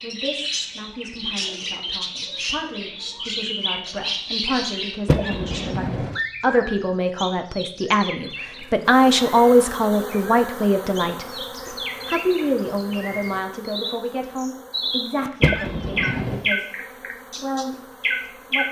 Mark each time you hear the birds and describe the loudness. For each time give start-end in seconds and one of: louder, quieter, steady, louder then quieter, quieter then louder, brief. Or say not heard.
0.0-18.6 quieter then louder.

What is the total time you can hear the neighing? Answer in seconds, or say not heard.
2 s.